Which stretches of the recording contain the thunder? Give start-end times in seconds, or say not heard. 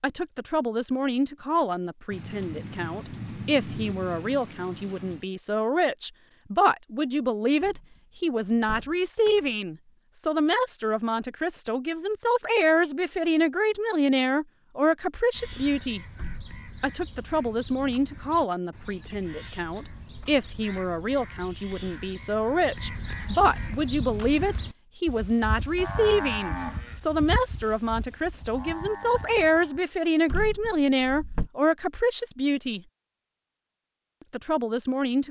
2.1-5.2.